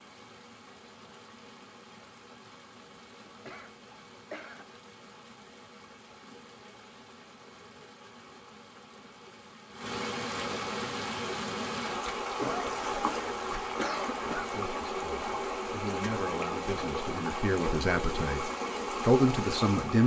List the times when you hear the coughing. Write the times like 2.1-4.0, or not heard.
3.2-4.8, 12.3-14.5.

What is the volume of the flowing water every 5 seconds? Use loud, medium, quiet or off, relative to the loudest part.
quiet, quiet, loud, loud.